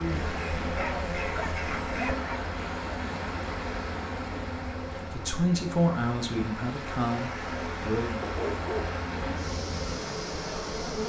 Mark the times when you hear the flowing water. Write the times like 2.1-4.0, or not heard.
0.0-11.0.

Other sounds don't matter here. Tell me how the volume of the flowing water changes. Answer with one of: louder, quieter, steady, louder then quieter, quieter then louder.
quieter then louder.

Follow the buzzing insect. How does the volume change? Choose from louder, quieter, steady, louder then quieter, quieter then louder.
steady.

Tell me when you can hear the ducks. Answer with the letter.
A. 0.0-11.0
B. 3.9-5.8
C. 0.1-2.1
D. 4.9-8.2
C.